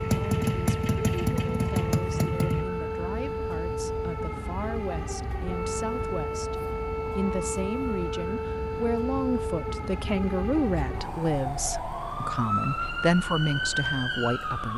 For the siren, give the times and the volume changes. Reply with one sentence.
You can hear the siren from 0.0 to 14.7 s, at a steady volume.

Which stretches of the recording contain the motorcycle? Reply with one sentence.
You can hear the motorcycle from 0.0 to 2.6 s.